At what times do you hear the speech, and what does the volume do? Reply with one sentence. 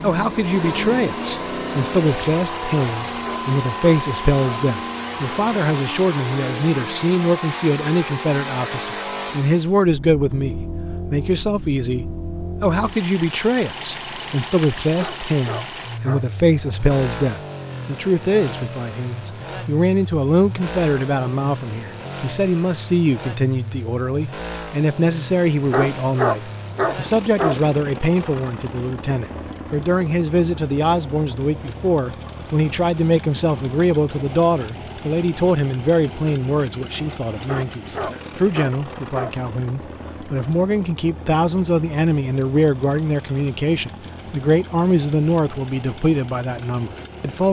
You can hear the speech from 0.0 to 47.4 s, at a steady volume.